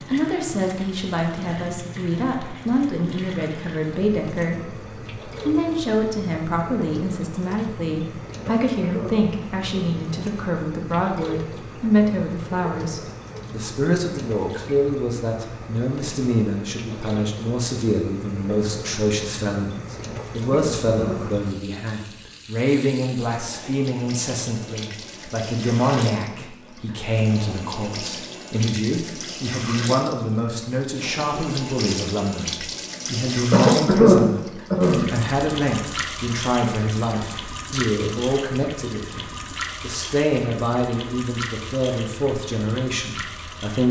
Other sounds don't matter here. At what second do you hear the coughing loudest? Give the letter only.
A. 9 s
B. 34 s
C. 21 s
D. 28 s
B.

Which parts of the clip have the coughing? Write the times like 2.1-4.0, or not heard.
8.4-10.1, 20.5-21.3, 33.5-35.1.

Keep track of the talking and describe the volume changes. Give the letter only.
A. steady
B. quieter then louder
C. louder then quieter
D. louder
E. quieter
A.